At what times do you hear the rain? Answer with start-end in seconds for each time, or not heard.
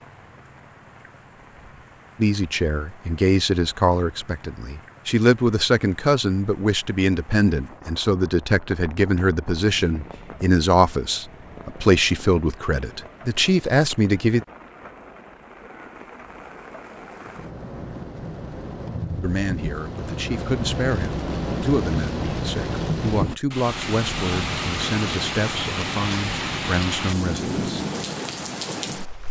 0.0-29.2.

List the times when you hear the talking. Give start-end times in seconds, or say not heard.
2.2-14.4, 19.2-27.9.